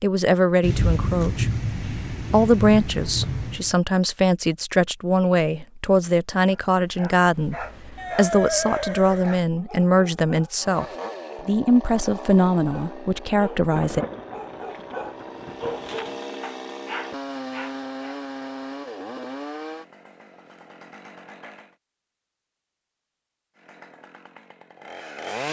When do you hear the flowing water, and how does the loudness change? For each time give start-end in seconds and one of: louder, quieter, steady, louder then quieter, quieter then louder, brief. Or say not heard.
not heard.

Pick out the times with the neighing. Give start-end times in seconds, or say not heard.
8.0-9.3.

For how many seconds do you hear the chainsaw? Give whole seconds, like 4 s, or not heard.
13 s.